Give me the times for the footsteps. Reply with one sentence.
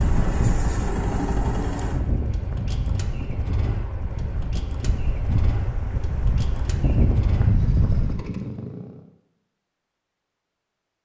You can't hear the footsteps here.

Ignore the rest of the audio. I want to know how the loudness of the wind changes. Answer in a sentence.
The loudness of the wind goes down, then up.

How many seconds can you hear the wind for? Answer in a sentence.
You can hear the wind for 8 seconds altogether.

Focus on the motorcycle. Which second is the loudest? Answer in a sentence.
The volume of the motorcycle peaks at 1 second.